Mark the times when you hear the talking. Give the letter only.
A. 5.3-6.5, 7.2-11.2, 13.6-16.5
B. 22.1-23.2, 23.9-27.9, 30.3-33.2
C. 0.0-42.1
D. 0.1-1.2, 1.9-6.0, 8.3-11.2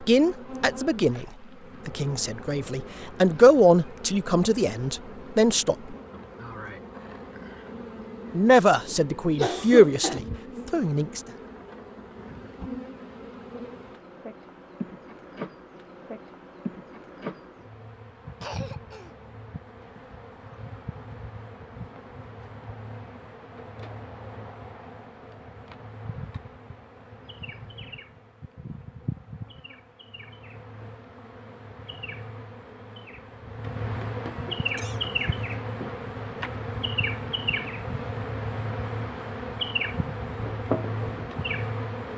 D.